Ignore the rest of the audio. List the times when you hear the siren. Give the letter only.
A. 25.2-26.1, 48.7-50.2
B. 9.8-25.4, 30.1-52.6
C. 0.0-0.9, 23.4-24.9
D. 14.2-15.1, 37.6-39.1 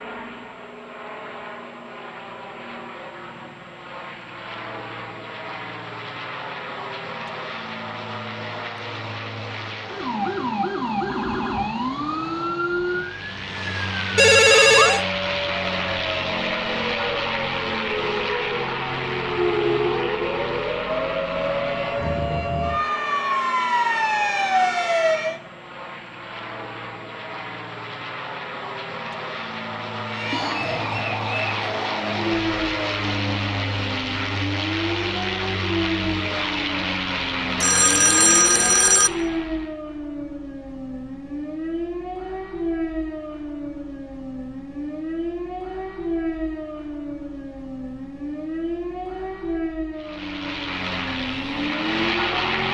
B.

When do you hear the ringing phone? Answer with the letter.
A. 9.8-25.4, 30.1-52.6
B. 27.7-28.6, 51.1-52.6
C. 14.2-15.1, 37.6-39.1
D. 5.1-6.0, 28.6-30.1
C.